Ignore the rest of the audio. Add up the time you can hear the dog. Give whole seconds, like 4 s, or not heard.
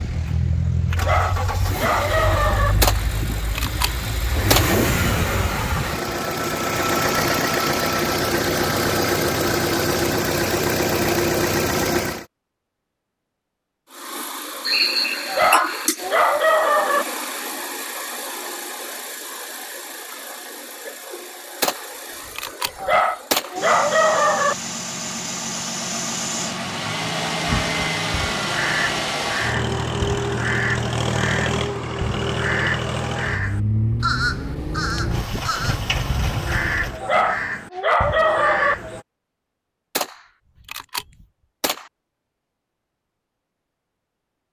7 s.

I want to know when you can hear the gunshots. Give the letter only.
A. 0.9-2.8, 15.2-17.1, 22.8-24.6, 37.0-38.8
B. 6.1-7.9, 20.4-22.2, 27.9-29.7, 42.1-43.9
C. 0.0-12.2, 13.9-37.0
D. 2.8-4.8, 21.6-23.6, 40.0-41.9
D.